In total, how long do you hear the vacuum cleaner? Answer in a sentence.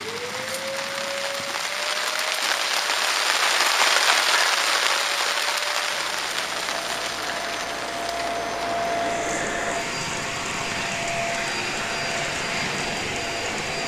You can hear the vacuum cleaner for 14 seconds altogether.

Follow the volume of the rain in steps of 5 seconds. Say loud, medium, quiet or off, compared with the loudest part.
loud, medium, quiet.